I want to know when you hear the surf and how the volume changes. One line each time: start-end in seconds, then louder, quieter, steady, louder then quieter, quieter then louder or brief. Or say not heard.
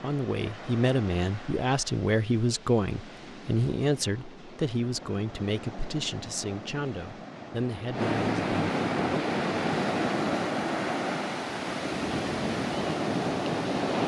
0.0-14.0 louder.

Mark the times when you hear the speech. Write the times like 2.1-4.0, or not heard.
0.0-8.5.